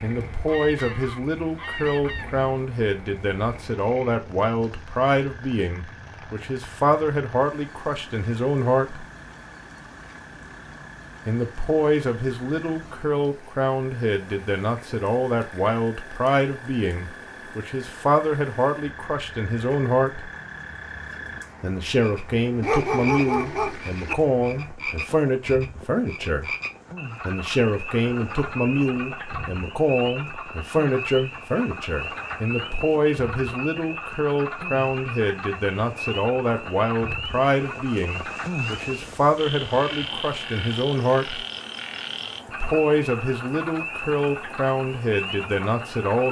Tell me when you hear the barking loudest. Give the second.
23 s.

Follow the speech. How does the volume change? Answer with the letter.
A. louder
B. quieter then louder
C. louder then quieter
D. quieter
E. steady
E.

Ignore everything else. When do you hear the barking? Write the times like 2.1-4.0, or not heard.
22.6-24.1.